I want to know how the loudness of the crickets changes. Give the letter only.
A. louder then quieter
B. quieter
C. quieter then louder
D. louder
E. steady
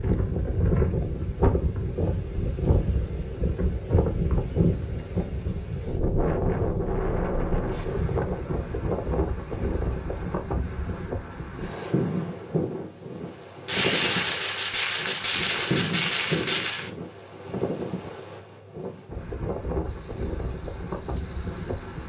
E.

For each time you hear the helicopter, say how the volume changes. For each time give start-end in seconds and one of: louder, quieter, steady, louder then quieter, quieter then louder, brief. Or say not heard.
not heard.